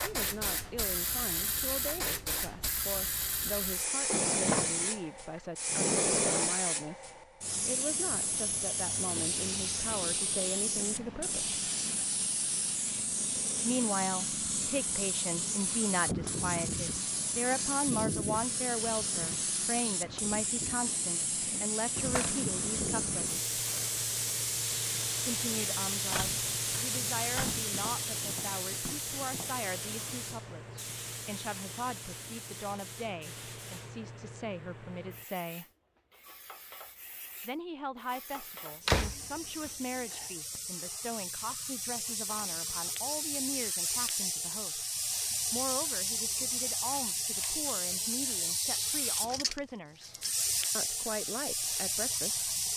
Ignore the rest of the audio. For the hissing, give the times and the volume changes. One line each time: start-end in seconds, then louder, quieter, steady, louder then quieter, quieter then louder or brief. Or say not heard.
0.0-52.7 quieter then louder.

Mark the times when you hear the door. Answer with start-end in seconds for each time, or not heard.
4.0-6.5, 26.1-27.6, 38.9-40.2.